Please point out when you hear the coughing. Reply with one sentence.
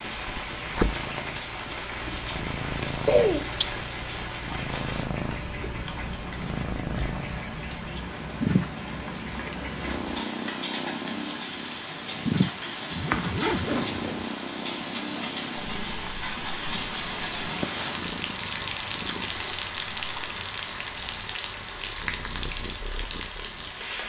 The coughing can be heard from 2.0 to 3.5 s.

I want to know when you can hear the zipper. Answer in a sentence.
You can hear the zipper from 12.9 to 14.2 s.